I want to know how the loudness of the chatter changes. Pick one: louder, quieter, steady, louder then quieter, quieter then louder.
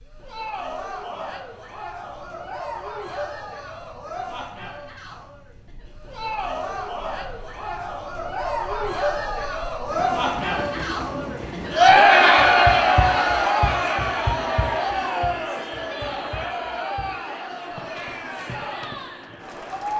louder then quieter.